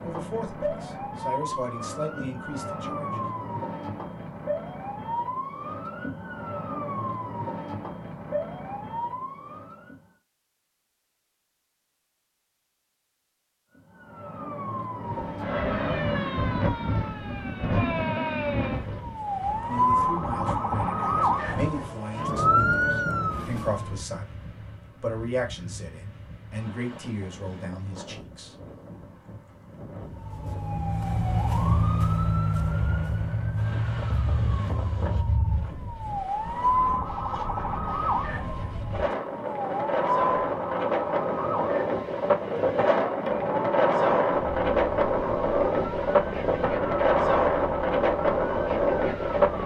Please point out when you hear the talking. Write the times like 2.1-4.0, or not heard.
0.0-3.2, 19.6-28.6.